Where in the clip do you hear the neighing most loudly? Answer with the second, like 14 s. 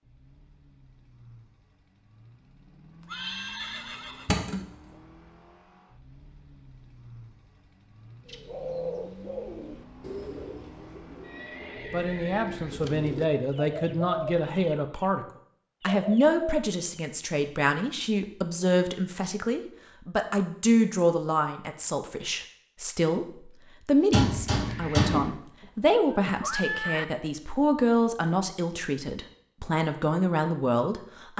27 s.